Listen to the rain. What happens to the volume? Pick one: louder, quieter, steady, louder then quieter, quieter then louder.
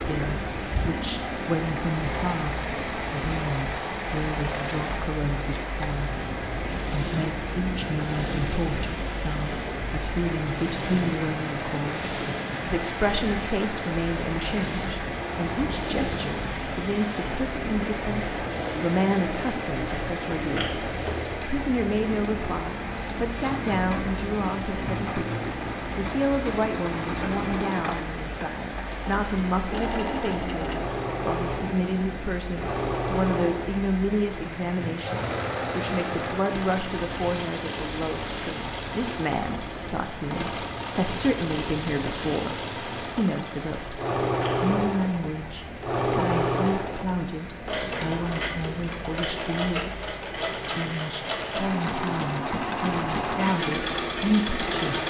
quieter.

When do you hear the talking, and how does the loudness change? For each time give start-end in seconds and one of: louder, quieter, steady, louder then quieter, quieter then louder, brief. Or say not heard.
0.0-55.0 steady.